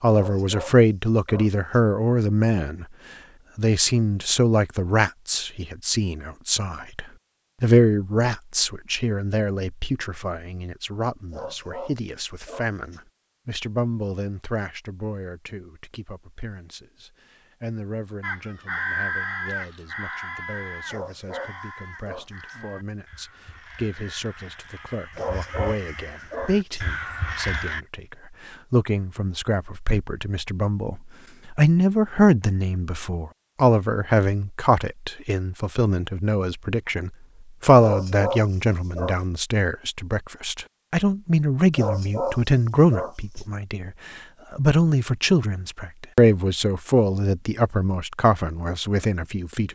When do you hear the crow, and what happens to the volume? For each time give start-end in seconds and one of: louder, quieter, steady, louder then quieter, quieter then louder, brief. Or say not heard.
18.2-27.9 quieter then louder.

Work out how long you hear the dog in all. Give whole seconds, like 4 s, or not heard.
10 s.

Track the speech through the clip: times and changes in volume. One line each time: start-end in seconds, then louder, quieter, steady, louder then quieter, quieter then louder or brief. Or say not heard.
0.0-2.9 brief
3.5-49.7 quieter then louder.